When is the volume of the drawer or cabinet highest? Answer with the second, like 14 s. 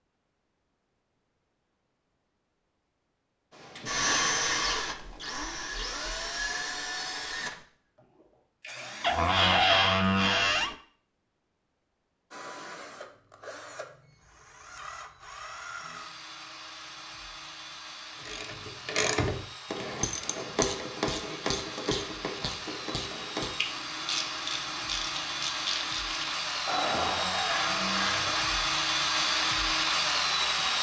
10 s.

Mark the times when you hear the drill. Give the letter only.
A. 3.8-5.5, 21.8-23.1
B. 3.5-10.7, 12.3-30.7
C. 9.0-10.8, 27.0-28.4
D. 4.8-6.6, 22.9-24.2
B.